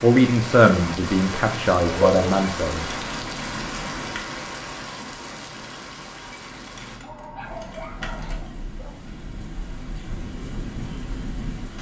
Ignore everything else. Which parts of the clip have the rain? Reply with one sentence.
You can hear the rain from 0.0 to 11.7 s.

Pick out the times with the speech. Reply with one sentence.
You can hear the speech from 0.0 to 2.9 s.